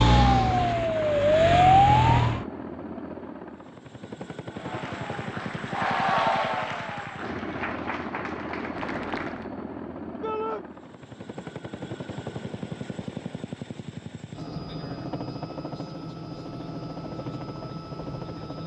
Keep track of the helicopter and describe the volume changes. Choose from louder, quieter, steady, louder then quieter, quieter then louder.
steady.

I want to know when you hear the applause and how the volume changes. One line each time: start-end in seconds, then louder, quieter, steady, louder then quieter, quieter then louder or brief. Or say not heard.
4.5-9.5 louder then quieter.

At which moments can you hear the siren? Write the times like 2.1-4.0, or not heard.
0.0-2.5.